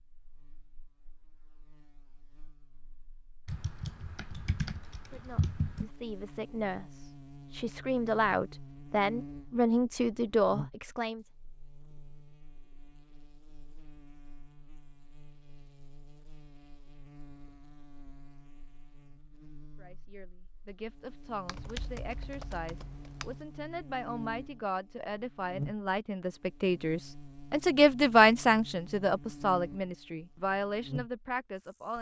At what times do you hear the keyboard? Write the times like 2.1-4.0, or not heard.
3.5-5.9, 21.4-23.4.